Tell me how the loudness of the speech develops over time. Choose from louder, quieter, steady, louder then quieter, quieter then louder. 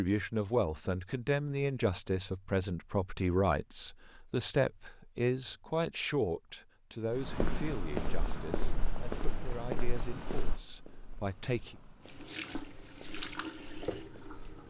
quieter.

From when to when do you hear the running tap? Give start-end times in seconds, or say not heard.
12.0-14.6.